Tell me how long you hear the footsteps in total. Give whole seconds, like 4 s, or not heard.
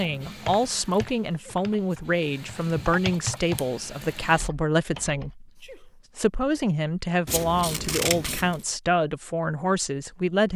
not heard.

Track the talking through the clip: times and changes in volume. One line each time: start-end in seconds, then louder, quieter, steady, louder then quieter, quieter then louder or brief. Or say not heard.
0.0-10.5 steady.